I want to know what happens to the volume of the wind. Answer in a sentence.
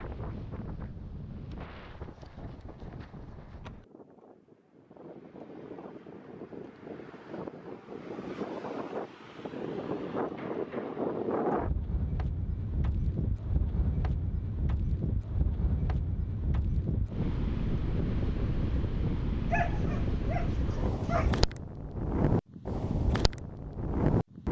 The volume of the wind goes up.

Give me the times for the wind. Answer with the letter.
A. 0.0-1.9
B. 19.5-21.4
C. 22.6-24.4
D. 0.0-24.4
D.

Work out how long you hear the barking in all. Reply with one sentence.
You can hear the barking for 2 seconds altogether.